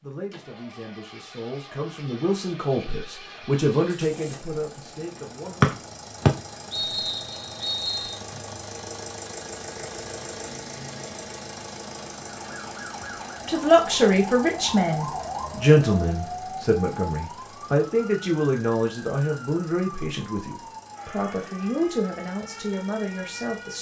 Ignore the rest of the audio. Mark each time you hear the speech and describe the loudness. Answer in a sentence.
The speech can be heard from 0.0 to 5.7 s, getting louder then quieter; and from 13.4 to 23.7 s, getting quieter.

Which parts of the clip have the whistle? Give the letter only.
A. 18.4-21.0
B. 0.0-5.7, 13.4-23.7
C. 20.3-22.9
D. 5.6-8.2
D.